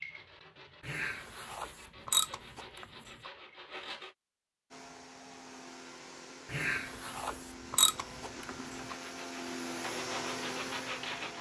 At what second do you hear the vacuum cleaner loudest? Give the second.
10 s.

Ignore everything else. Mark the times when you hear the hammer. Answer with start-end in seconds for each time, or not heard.
not heard.